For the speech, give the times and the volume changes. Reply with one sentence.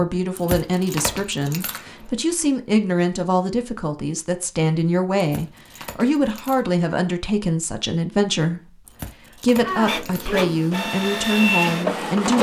The speech can be heard from 0.0 to 12.3 s, at a steady volume.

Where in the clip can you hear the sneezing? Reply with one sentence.
The sneezing can be heard from 9.6 to 10.6 s.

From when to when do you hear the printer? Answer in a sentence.
The printer can be heard from 9.7 to 12.3 s.